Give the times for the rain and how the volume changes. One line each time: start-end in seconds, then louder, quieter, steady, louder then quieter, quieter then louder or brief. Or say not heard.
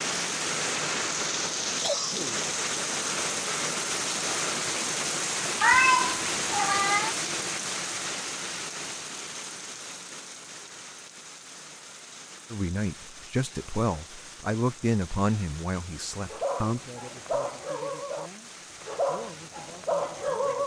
0.0-20.6 quieter.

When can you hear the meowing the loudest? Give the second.
6 s.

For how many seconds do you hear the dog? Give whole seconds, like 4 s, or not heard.
4 s.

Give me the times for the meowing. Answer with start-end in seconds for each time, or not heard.
5.6-7.2.